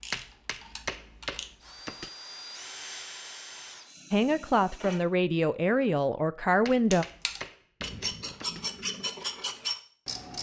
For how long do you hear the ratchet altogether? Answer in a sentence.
The ratchet can be heard for 5 seconds in total.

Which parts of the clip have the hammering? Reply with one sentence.
The hammering can be heard from 0.1 to 2.1 s and from 6.7 to 8.7 s.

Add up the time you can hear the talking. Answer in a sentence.
You can hear the talking for 3 seconds altogether.